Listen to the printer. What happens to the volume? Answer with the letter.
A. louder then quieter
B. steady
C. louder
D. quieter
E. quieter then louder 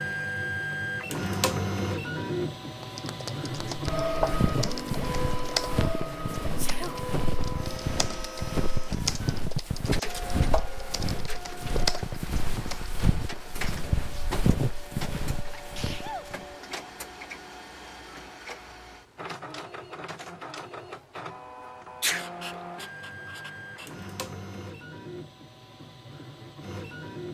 D.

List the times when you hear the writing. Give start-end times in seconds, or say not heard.
2.8-4.0, 22.1-24.1.